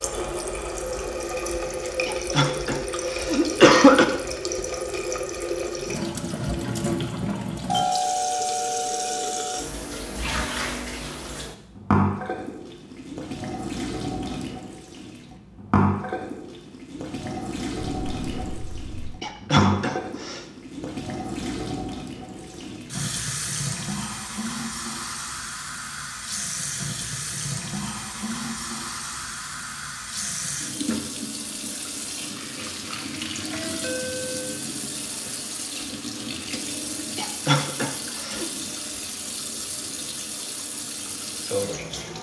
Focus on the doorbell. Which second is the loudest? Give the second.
8 s.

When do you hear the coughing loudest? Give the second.
4 s.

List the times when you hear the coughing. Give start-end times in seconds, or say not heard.
2.0-4.0, 19.2-20.4, 37.1-38.5.